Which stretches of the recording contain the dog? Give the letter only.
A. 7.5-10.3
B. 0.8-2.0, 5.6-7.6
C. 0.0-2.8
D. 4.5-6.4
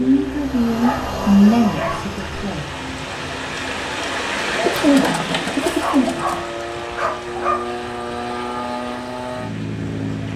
B.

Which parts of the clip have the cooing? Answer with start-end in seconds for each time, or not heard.
4.5-6.4.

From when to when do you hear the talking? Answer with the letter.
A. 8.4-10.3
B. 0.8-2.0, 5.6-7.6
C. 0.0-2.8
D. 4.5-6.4
C.